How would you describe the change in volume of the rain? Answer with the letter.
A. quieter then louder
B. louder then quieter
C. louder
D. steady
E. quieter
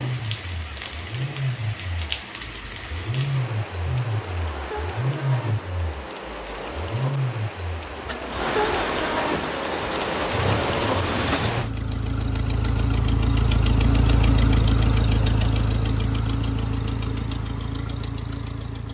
C.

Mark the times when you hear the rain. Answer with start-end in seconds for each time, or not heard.
0.0-11.7.